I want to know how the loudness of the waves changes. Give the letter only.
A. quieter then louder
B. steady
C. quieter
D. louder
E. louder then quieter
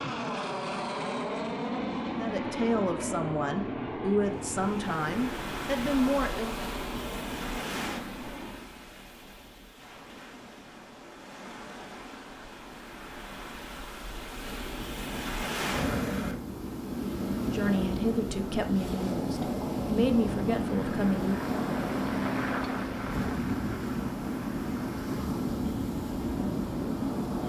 A.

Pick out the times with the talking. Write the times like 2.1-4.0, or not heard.
2.1-6.5, 17.4-21.5.